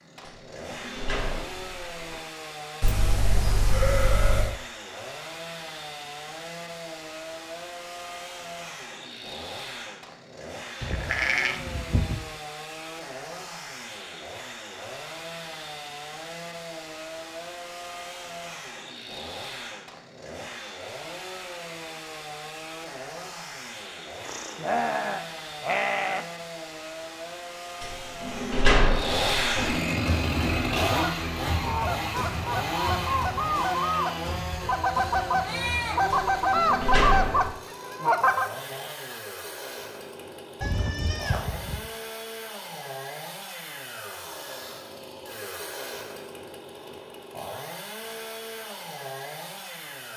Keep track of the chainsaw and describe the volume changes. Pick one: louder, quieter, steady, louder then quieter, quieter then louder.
louder then quieter.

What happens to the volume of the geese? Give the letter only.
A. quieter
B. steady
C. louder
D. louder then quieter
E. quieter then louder
C.